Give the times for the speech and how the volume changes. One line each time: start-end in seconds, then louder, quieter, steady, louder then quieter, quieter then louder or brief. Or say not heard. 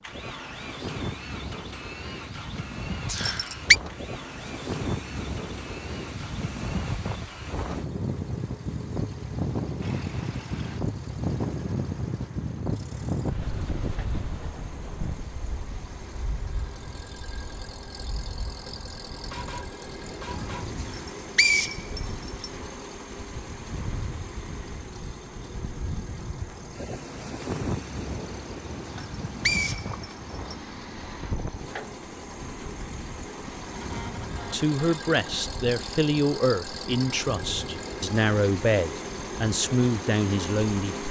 34.5-41.0 steady.